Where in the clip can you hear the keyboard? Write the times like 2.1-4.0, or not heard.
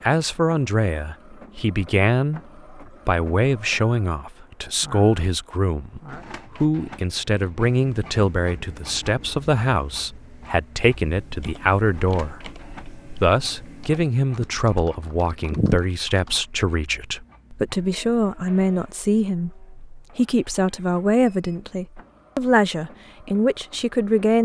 11.0-16.4.